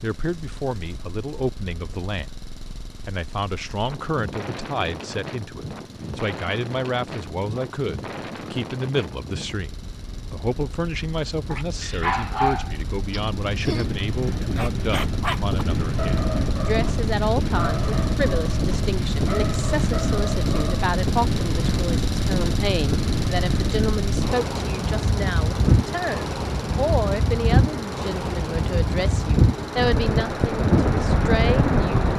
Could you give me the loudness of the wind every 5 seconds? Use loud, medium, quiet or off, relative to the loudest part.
quiet, quiet, quiet, medium, medium, loud, loud.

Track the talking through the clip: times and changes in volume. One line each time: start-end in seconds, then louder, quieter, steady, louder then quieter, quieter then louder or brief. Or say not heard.
0.0-32.0 steady.